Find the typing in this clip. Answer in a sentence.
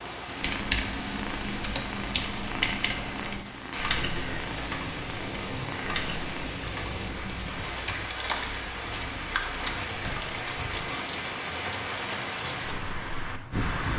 You can hear the typing from 0.4 to 10.8 s.